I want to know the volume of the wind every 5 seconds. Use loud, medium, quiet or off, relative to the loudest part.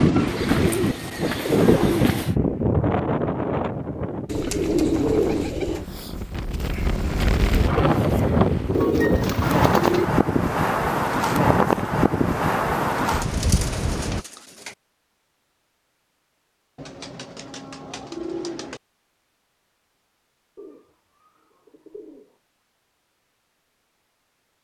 loud, loud, loud, off, off.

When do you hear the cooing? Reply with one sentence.
You can hear the cooing from 0.2 to 2.4 s, from 4.2 to 5.8 s, from 8.7 to 10.2 s, from 13.2 to 14.8 s, from 16.8 to 18.8 s and from 20.6 to 22.4 s.